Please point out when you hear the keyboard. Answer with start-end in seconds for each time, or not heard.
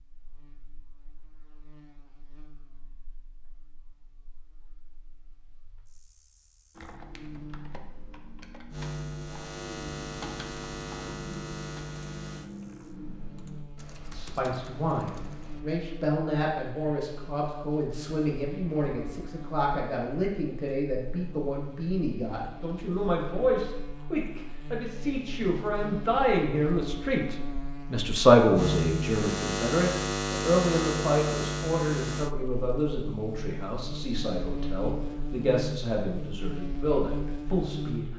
6.8-15.7.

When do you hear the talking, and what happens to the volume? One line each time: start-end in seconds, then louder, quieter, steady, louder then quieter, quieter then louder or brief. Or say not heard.
14.1-38.1 louder then quieter.